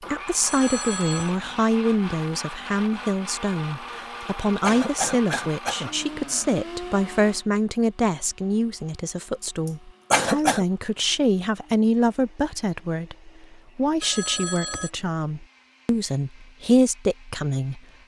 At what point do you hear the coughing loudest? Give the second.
10 s.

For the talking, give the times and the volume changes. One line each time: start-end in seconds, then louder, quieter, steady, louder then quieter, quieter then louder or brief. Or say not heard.
0.1-17.8 steady.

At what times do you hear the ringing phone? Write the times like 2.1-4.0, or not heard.
0.5-1.3, 14.0-14.9.